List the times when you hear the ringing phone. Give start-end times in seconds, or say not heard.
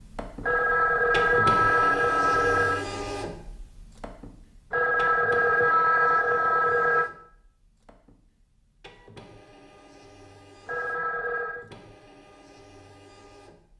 0.4-2.9, 4.7-7.1, 10.7-11.7.